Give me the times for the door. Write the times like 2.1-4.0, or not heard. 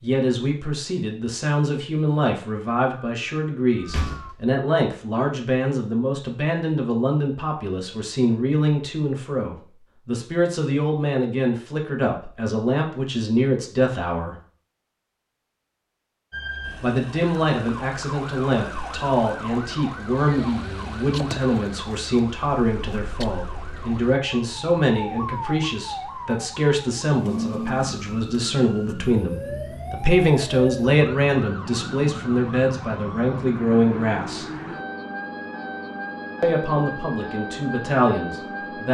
3.8-4.3.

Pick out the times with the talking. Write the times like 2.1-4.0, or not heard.
0.0-14.3, 16.8-34.5, 36.4-38.8.